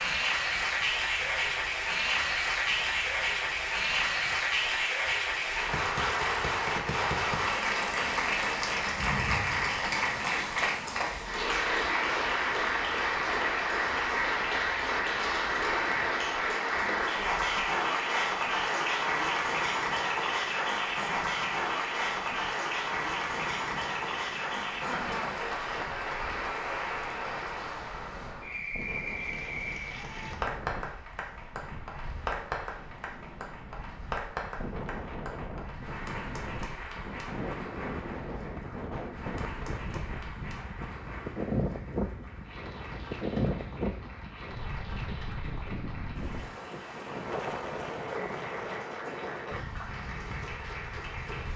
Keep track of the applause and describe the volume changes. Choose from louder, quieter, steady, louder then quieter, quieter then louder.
quieter.